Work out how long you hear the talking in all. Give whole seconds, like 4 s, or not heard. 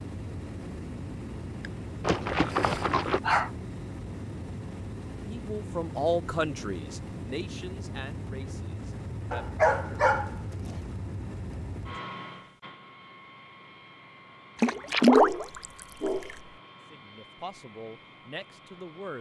7 s.